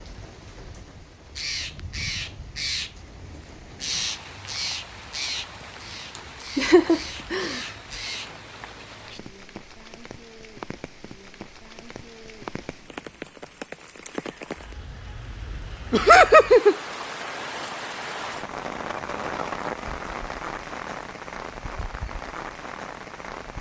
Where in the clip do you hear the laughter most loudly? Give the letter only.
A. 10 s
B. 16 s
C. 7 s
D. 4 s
B.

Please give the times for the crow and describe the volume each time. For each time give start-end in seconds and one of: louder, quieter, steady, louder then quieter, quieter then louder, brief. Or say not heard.
1.2-8.3 quieter.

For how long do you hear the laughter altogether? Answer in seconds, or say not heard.
2 s.